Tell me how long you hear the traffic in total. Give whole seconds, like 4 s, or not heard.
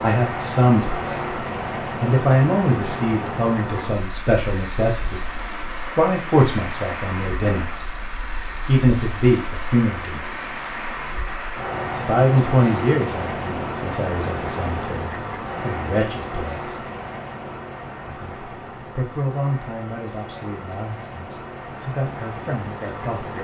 23 s.